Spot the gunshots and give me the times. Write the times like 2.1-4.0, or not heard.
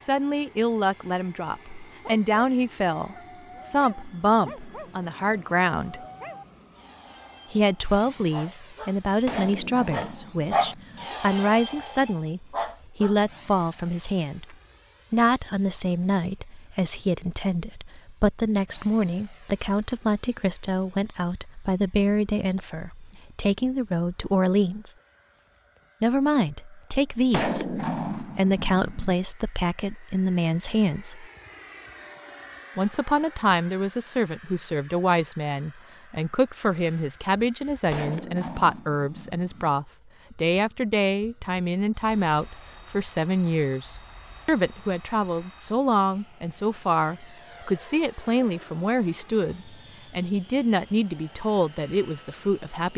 9.2-11.1, 27.3-29.1, 37.9-39.7.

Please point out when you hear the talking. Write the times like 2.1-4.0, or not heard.
0.0-6.0, 7.5-24.9, 26.0-31.2, 32.8-52.9.